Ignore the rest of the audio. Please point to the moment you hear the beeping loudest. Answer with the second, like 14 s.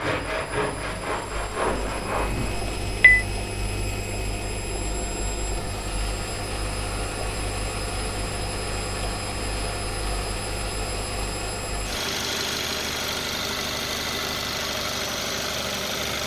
3 s.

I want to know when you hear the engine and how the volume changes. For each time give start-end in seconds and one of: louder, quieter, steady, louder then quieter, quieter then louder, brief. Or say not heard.
0.0-16.2 louder.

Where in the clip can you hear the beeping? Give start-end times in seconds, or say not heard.
1.6-3.2.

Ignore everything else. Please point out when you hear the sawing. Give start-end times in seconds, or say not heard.
0.0-2.6.